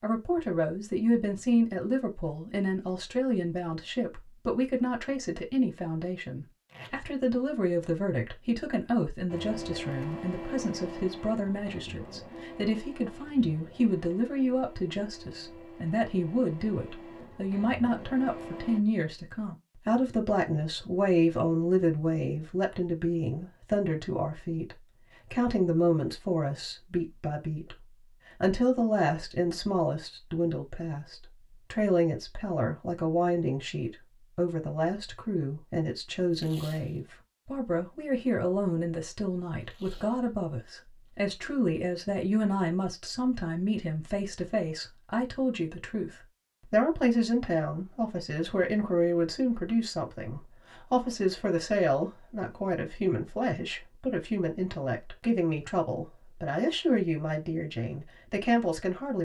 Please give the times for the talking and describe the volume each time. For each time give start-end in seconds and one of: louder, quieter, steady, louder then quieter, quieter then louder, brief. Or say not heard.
0.0-59.1 steady.